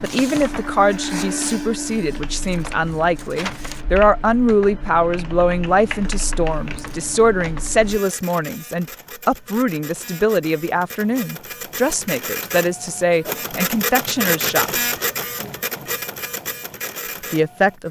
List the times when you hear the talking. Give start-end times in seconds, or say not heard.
0.0-14.7, 17.3-17.8.